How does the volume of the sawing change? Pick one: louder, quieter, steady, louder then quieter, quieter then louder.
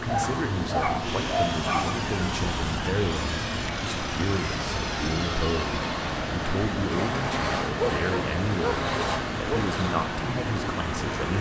steady.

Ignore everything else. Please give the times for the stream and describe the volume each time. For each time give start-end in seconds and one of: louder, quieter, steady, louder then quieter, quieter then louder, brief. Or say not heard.
0.0-11.3 steady.